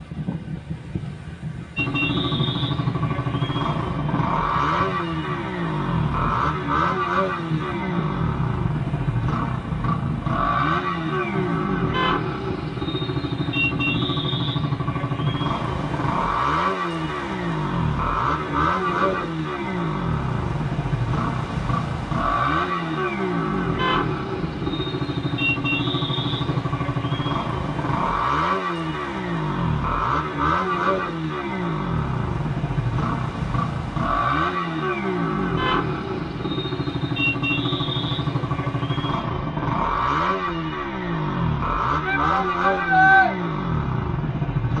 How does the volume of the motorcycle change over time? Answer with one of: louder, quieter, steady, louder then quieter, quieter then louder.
steady.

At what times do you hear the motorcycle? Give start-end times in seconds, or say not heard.
1.8-44.7.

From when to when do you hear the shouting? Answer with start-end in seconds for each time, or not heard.
42.0-43.3.